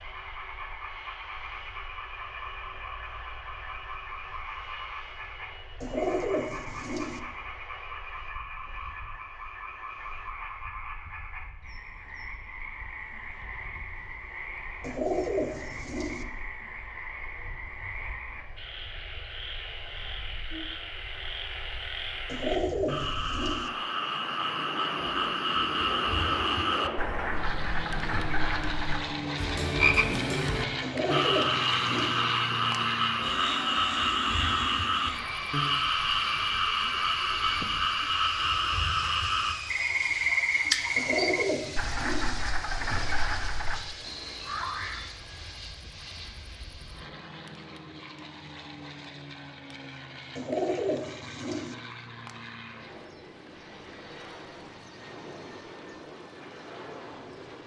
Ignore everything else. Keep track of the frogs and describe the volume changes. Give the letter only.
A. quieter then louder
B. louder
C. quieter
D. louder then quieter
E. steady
B.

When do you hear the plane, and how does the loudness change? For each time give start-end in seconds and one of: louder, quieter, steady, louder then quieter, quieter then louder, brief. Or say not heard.
0.0-57.6 louder then quieter.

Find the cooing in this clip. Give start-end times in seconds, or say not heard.
5.8-7.2, 14.8-16.2, 22.2-23.7, 30.8-32.2, 41.0-42.4, 50.4-51.8.